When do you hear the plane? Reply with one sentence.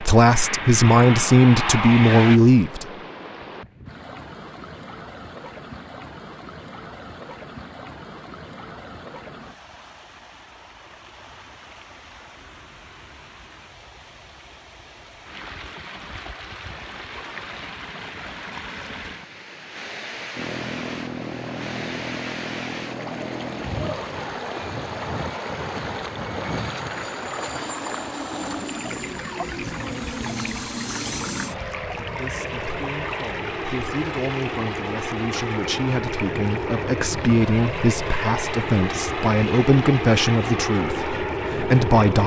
The plane can be heard from 0.0 to 2.4 s and from 20.4 to 42.2 s.